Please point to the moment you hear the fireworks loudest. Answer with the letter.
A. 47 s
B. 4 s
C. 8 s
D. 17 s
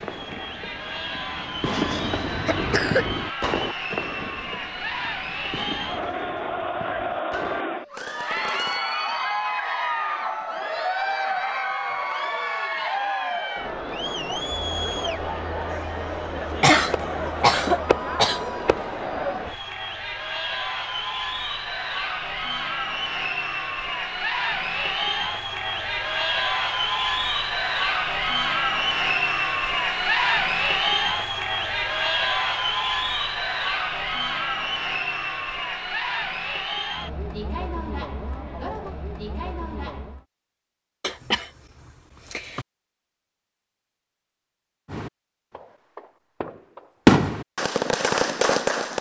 A.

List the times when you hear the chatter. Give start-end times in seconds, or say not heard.
0.0-40.2.